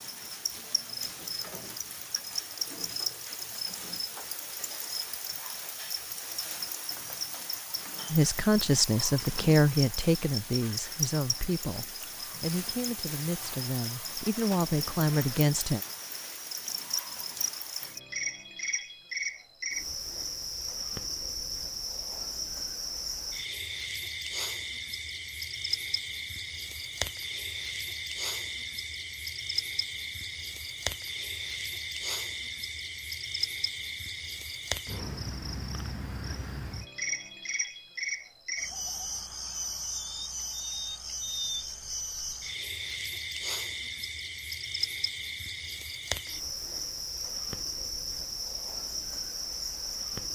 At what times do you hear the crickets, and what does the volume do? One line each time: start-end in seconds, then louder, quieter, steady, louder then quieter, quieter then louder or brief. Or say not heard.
0.0-50.3 steady.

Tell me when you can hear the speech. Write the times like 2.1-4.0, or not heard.
8.1-15.8.